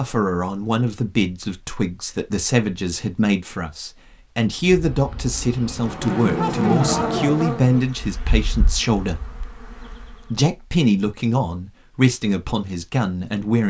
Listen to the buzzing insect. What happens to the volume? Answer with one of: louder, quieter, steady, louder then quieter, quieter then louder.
louder then quieter.